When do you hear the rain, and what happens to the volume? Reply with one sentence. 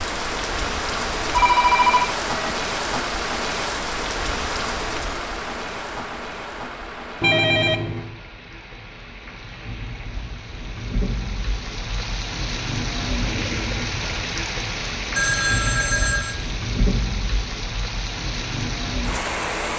You can hear the rain from 0.0 to 19.7 s, getting quieter then louder.